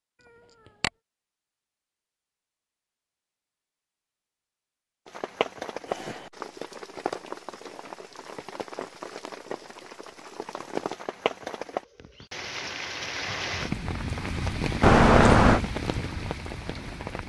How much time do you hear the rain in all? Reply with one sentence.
You can hear the rain for 12 seconds altogether.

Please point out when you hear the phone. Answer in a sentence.
You can't hear the phone here.